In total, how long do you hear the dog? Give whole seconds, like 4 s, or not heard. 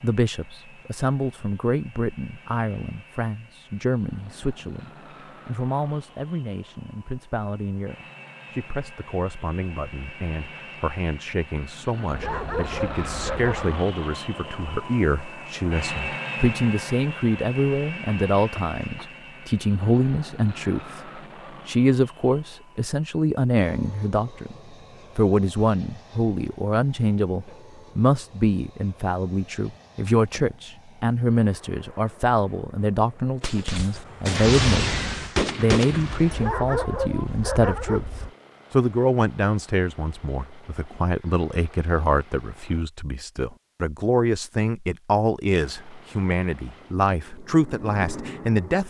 4 s.